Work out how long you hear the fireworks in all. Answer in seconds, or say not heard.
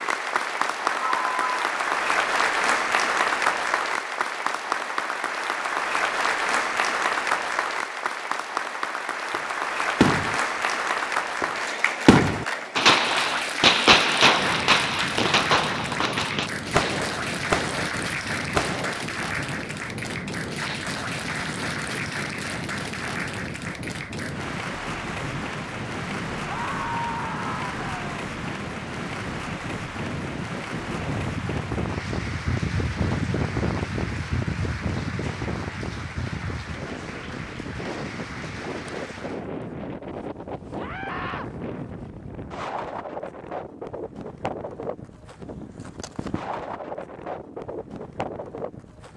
9 s.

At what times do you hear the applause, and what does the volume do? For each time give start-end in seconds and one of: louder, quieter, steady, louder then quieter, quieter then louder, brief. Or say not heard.
0.0-39.5 quieter.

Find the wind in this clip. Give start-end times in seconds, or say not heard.
14.3-49.1.